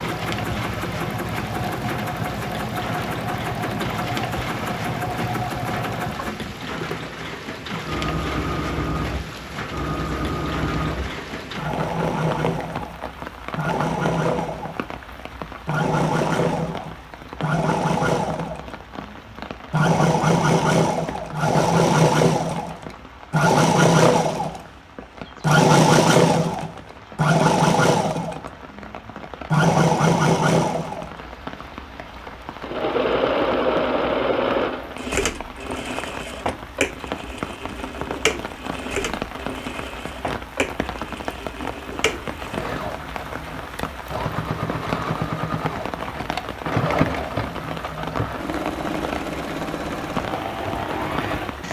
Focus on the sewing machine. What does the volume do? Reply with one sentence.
The loudness of the sewing machine goes up, then down.